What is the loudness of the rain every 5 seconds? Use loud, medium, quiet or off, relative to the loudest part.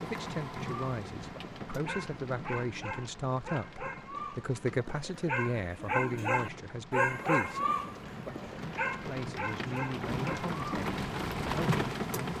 medium, medium, loud.